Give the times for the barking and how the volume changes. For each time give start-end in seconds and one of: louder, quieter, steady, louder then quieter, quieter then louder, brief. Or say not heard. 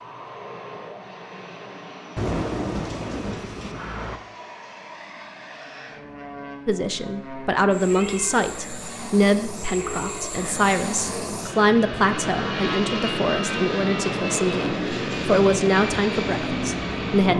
not heard.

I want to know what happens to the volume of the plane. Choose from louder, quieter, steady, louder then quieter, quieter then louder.
louder.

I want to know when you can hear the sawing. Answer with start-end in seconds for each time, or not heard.
not heard.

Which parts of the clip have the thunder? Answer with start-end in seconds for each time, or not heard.
2.1-4.2.